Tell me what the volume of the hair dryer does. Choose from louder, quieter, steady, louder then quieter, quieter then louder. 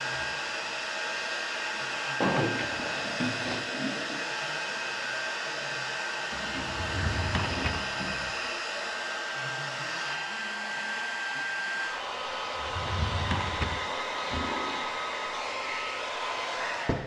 steady.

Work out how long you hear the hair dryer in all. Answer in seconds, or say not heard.
17 s.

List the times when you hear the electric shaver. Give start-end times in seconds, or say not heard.
not heard.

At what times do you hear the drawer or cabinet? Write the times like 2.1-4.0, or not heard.
2.2-3.7, 6.7-7.8, 12.6-14.5.